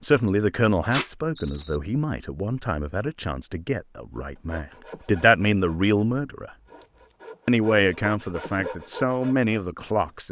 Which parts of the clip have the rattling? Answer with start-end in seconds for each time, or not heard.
1.4-1.8.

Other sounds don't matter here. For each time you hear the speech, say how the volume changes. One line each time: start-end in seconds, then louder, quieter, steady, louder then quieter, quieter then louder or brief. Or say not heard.
0.0-6.5 quieter then louder
7.5-10.2 brief.